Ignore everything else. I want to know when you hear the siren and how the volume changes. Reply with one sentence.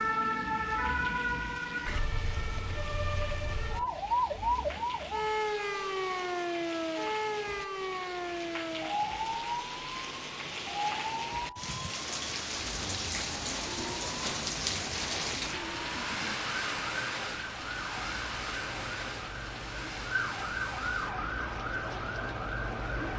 The siren can be heard from 0.0 to 23.1 s, getting quieter then louder.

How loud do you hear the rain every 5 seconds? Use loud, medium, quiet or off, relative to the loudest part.
medium, medium, loud, loud, medium.